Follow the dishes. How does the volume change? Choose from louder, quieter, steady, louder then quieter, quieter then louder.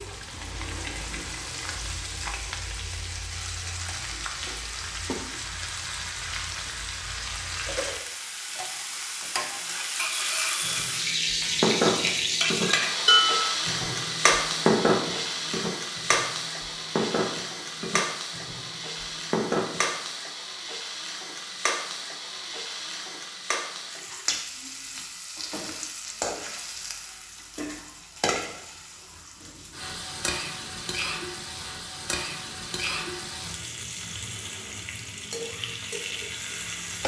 quieter.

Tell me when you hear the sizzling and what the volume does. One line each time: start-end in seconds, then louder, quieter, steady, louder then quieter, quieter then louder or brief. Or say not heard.
0.0-37.0 louder then quieter.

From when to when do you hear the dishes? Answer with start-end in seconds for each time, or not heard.
10.6-19.9.